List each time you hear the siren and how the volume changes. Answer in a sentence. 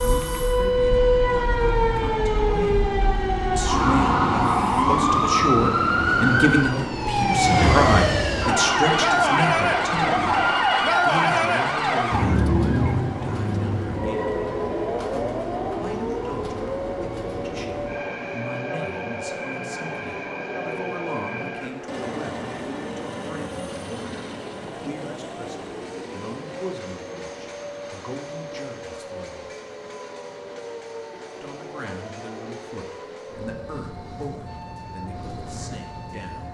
You can hear the siren from 0.0 to 36.5 s, getting quieter.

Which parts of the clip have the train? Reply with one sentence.
The train can be heard from 0.0 to 36.5 s.